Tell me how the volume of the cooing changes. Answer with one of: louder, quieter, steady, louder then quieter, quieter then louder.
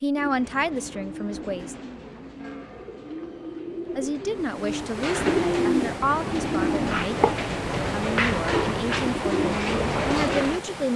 louder.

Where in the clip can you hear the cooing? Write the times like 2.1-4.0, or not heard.
0.1-10.6.